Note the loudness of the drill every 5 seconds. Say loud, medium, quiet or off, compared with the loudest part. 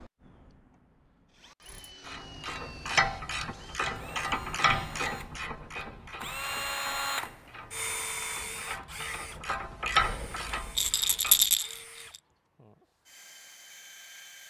quiet, loud, quiet.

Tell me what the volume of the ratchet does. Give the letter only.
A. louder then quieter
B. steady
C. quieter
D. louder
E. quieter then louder
E.